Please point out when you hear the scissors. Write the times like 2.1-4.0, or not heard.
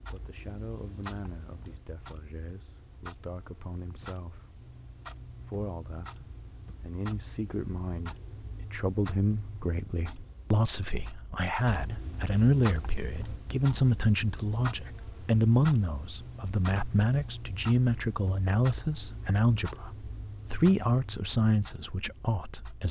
not heard.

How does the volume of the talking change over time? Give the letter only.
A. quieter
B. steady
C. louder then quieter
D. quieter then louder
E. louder
E.